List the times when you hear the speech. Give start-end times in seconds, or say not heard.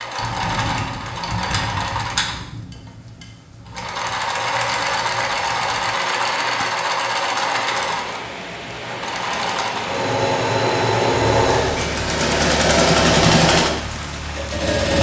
not heard.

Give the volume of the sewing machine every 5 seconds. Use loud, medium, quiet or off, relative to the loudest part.
medium, medium, loud.